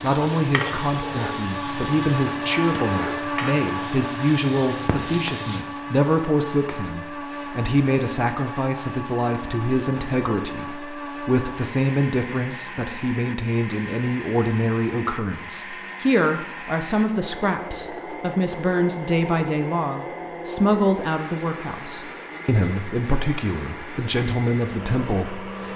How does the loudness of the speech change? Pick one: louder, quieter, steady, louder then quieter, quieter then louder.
steady.